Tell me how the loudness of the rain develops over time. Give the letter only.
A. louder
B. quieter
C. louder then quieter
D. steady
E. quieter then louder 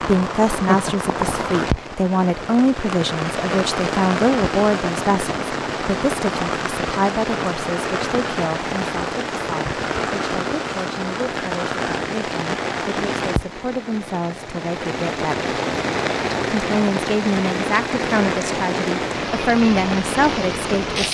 D.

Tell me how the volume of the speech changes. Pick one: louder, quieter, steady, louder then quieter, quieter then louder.
quieter then louder.